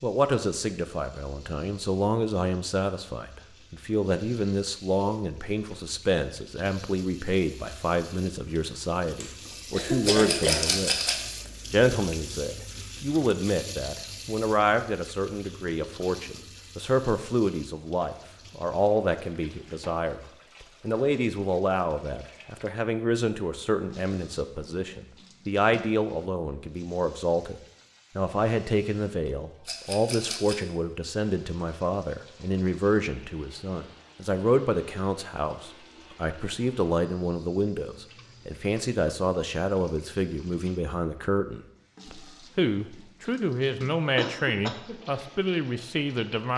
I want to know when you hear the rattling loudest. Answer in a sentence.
The volume of the rattling peaks at 11 seconds.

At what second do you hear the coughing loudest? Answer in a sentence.
The loudest moment of the coughing is at 10 seconds.